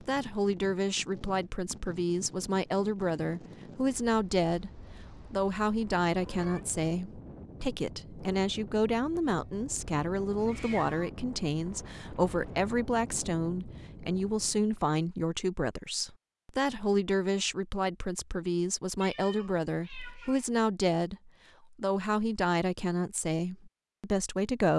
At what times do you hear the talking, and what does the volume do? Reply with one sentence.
The talking can be heard from 0.0 to 24.7 s, at a steady volume.